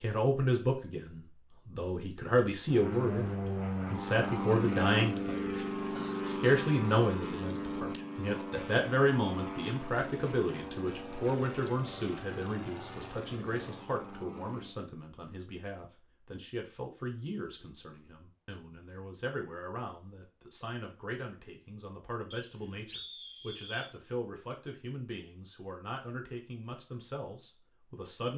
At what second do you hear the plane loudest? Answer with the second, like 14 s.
5 s.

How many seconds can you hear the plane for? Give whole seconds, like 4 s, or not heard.
12 s.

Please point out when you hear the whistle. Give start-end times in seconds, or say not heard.
22.3-23.9.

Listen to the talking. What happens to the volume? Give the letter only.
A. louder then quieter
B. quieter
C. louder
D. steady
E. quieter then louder
B.